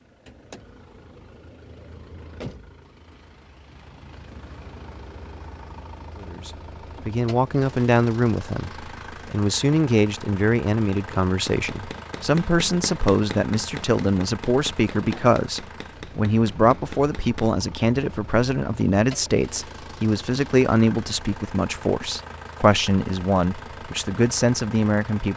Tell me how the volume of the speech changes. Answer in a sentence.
The volume of the speech stays about the same.